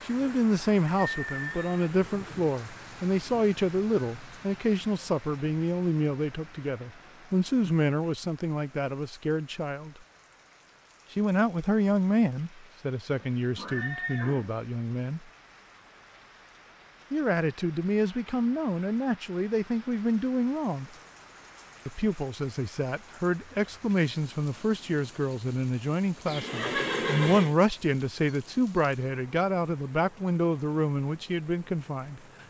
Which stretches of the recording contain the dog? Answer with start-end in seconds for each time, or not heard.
not heard.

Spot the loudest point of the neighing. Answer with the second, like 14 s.
27 s.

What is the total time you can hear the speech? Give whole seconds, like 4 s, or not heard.
28 s.